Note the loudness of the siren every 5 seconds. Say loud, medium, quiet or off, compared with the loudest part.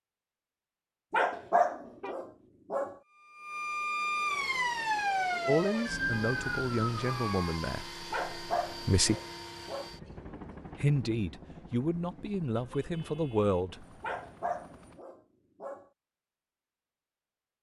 loud, loud, off, off.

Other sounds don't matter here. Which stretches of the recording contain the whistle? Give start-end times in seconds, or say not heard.
not heard.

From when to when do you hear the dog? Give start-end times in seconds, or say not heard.
1.1-3.0, 8.1-9.9, 14.0-15.8.